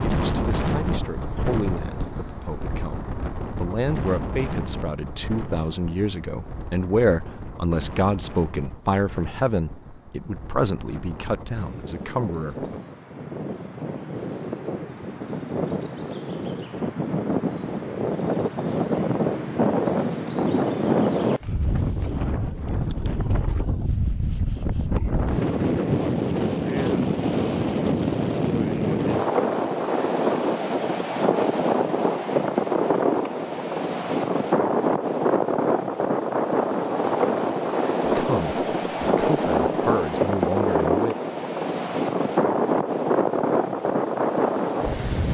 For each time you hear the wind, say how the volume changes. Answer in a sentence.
The wind can be heard from 0.0 to 45.2 s, getting louder.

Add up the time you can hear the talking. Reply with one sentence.
You can hear the talking for 16 seconds altogether.